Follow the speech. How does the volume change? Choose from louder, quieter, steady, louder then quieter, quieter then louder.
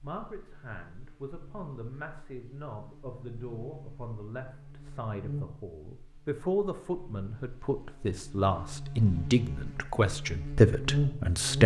louder.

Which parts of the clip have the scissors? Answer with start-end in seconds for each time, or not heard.
not heard.